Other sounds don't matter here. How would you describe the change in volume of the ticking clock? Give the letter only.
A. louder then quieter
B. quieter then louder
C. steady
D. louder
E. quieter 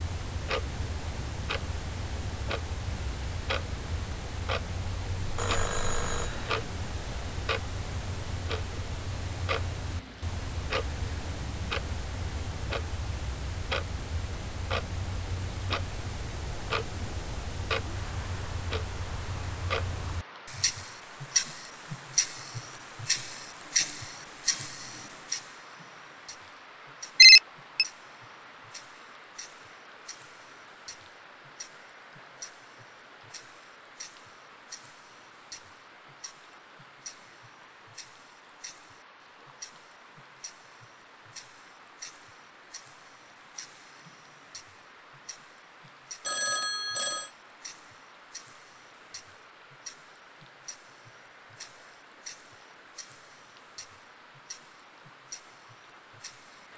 E.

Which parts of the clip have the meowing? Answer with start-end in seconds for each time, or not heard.
not heard.